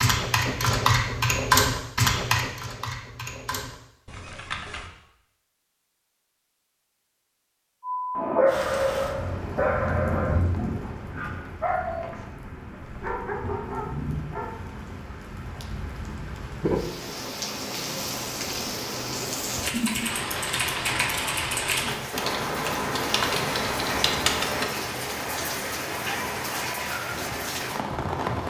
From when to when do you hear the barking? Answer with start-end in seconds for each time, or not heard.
7.8-14.7.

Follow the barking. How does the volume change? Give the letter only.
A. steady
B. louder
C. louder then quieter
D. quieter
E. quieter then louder
D.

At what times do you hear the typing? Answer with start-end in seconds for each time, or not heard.
0.0-4.9, 19.6-24.6.